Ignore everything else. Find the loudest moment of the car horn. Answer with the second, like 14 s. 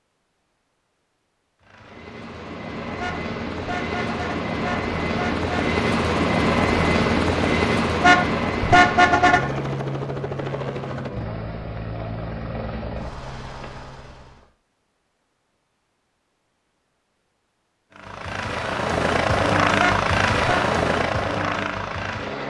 9 s.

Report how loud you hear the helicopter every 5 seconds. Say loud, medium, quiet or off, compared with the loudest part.
medium, loud, medium, loud, loud.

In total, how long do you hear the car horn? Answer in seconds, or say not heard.
5 s.